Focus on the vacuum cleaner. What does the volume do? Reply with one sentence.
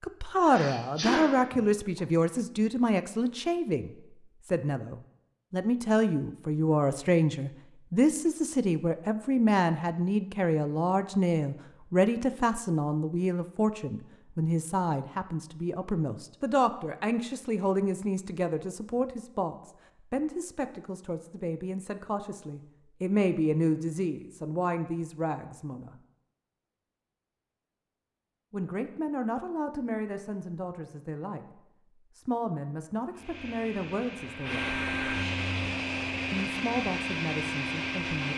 The volume of the vacuum cleaner goes up.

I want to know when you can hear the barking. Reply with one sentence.
The barking can't be heard in this clip.